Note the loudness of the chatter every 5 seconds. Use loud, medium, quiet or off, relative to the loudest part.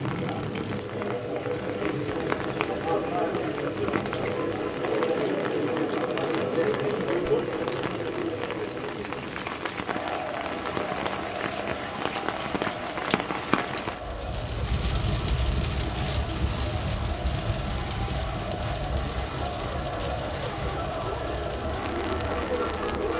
loud, loud, medium, medium, loud.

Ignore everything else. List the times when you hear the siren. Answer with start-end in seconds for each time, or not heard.
not heard.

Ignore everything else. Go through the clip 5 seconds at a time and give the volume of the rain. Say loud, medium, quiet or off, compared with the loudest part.
loud, loud, loud, loud, medium.